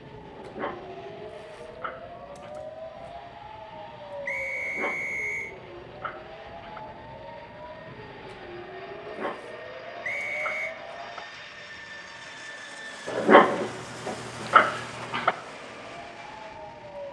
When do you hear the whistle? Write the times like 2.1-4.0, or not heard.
4.2-5.5, 10.0-10.8.